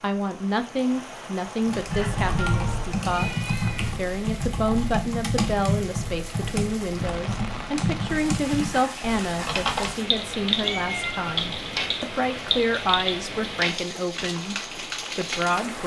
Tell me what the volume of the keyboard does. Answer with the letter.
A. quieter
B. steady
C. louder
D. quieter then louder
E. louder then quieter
B.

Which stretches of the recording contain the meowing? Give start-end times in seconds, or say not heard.
1.9-3.9, 10.6-11.8.